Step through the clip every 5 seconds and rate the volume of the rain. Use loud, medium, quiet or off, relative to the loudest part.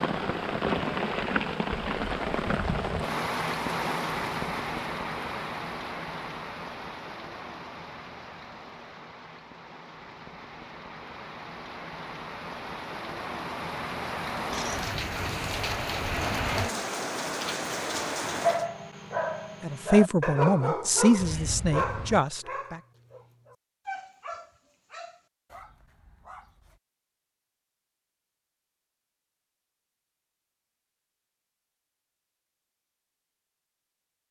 loud, medium, medium, loud, off, off, off.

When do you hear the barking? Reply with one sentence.
The barking can be heard from 18.2 to 26.8 s.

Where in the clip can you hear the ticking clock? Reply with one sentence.
The ticking clock can't be heard in this clip.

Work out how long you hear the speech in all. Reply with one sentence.
You can hear the speech for 3 seconds altogether.